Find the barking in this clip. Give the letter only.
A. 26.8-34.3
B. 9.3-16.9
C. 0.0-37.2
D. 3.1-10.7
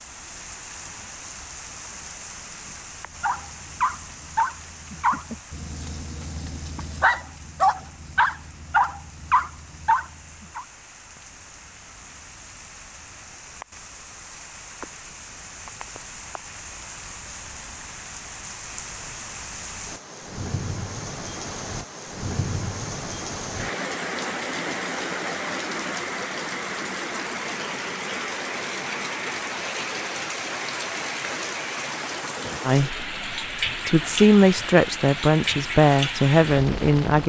D.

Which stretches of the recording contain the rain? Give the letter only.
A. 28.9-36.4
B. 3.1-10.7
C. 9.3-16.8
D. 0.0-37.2
D.